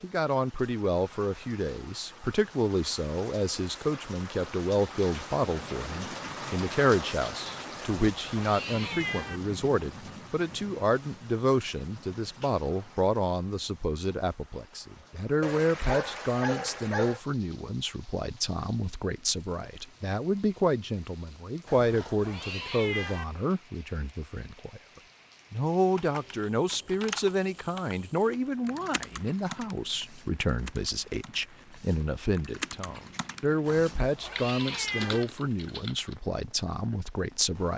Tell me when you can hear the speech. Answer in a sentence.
The speech can be heard from 0.0 to 24.8 s and from 25.5 to 37.7 s.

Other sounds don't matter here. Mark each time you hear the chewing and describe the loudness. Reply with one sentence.
You can't hear the chewing here.